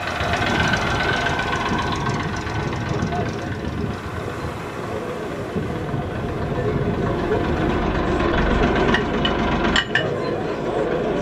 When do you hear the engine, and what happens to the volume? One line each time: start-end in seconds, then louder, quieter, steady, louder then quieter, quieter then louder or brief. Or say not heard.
0.0-11.1 quieter then louder.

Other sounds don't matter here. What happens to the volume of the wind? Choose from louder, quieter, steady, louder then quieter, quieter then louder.
steady.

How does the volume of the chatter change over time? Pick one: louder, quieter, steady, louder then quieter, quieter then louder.
louder.